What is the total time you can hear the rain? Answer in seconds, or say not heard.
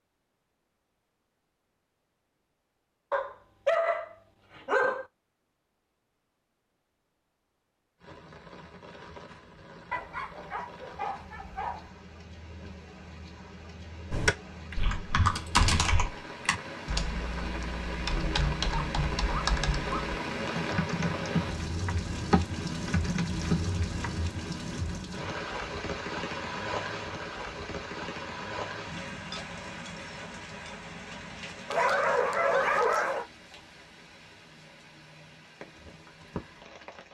29 s.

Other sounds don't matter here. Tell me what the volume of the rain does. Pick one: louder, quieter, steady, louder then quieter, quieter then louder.
louder then quieter.